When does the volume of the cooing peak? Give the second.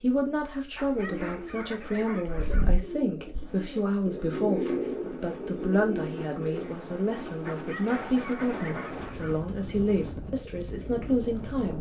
5 s.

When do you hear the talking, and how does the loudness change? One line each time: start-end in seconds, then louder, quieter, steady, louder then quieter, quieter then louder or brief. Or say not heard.
0.0-11.7 steady.